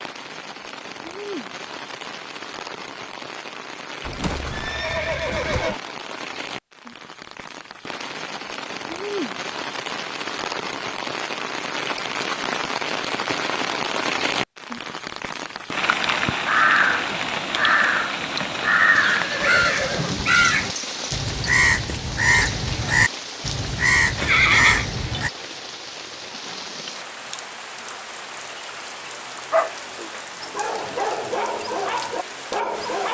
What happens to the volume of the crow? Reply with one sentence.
The volume of the crow stays about the same.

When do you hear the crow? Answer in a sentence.
The crow can be heard from 16.1 to 25.3 s.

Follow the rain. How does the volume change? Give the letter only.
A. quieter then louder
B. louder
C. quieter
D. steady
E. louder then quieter
E.